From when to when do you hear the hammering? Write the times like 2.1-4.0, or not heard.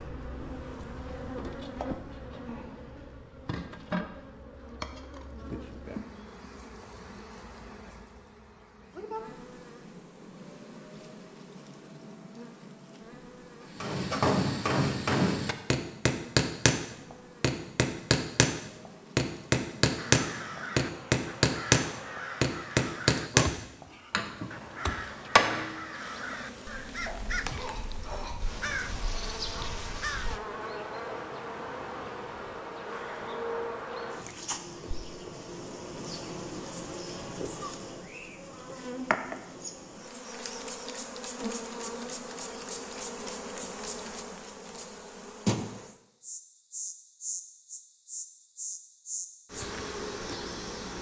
13.8-25.8.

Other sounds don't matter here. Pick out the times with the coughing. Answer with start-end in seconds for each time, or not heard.
27.1-28.6.